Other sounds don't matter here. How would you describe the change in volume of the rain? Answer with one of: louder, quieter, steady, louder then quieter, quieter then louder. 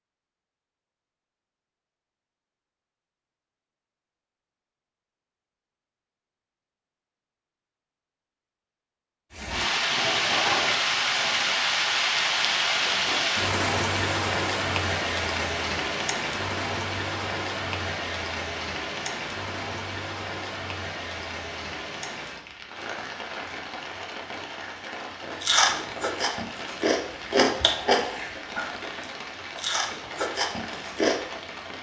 quieter.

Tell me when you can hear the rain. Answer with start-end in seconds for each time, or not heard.
9.3-31.7.